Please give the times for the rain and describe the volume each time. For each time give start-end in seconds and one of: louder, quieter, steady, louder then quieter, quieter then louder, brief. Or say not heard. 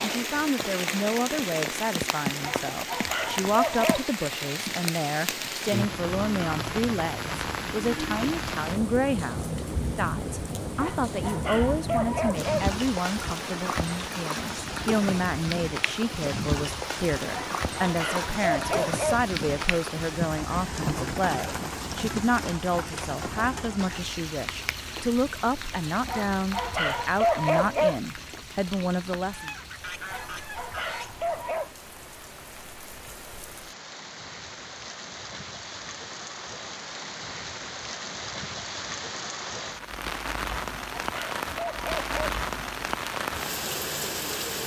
0.0-44.6 quieter then louder.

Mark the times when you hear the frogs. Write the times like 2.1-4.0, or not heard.
not heard.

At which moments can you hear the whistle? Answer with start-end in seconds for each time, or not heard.
not heard.